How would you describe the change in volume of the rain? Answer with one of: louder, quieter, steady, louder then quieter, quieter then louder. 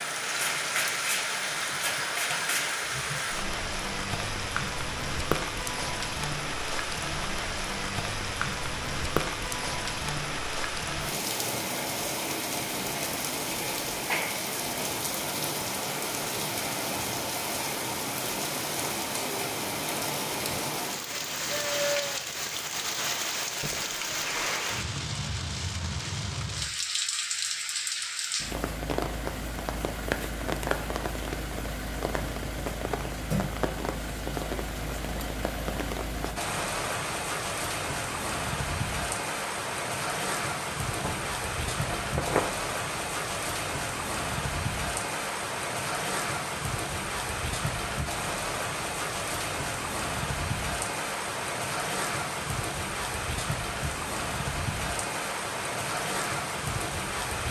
steady.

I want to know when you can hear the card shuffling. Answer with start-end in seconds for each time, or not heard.
0.3-2.8.